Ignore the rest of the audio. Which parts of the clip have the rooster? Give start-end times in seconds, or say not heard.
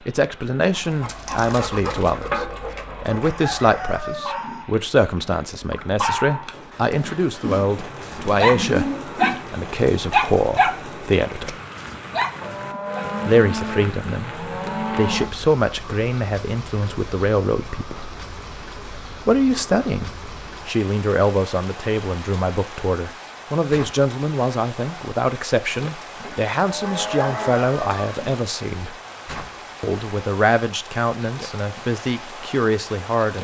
3.1-4.7, 27.0-28.4.